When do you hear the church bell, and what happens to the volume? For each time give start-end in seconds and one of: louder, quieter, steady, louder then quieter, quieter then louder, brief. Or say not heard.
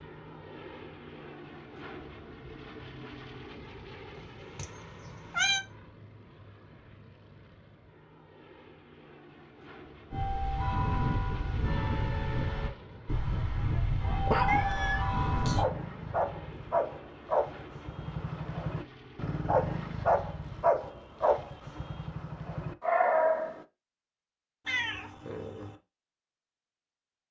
10.1-15.7 steady.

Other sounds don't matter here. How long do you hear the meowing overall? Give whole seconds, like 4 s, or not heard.
4 s.